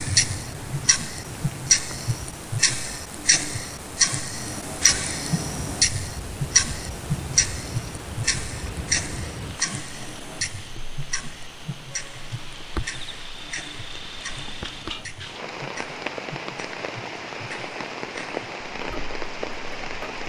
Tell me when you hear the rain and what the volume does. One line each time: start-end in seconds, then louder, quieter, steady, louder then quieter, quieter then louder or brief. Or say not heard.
0.0-20.2 louder.